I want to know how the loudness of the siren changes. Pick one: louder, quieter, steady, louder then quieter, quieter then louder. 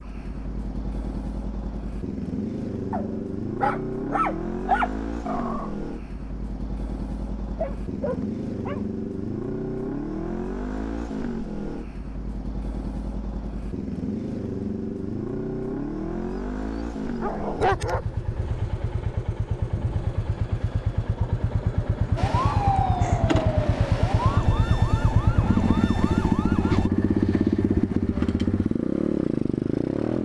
quieter.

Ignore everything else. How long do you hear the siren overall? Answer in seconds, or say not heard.
5 s.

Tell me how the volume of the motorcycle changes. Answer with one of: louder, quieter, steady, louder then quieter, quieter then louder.
louder.